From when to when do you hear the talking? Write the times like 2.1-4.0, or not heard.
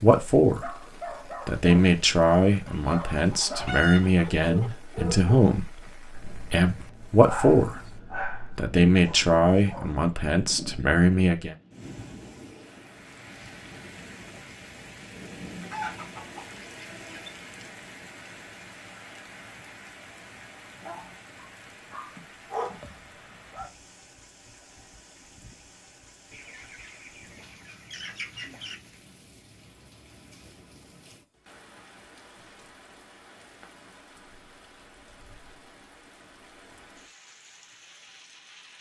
0.0-0.7, 1.4-7.8, 8.6-11.6.